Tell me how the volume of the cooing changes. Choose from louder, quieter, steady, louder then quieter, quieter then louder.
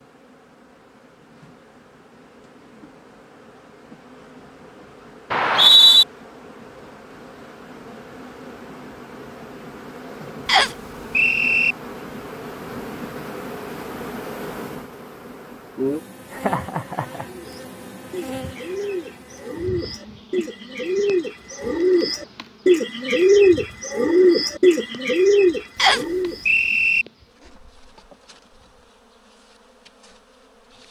louder.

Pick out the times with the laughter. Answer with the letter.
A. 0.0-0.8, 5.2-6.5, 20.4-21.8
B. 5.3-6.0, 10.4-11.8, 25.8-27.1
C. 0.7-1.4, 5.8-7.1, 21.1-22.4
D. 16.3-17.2
D.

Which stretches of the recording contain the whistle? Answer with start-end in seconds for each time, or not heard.
5.3-6.0, 10.4-11.8, 25.8-27.1.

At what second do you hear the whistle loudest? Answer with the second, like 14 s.
6 s.